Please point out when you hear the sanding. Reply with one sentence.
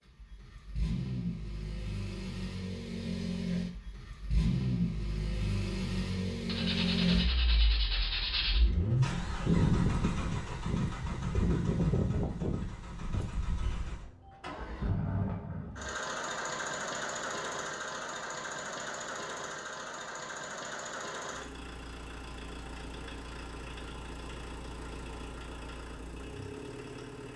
You can hear the sanding from 6.5 to 8.6 s.